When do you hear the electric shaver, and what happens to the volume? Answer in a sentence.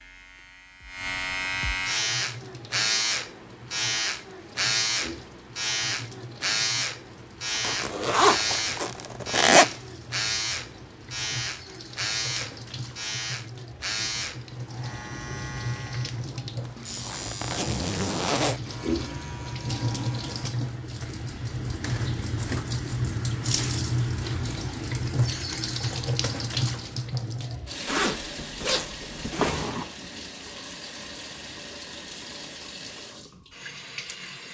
You can hear the electric shaver from 0.0 to 20.6 s, getting quieter.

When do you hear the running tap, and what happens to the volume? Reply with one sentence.
The running tap can be heard from 1.8 to 34.4 s, getting louder then quieter.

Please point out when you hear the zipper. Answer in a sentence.
You can hear the zipper from 7.5 to 9.8 s, from 16.6 to 18.6 s and from 27.9 to 29.7 s.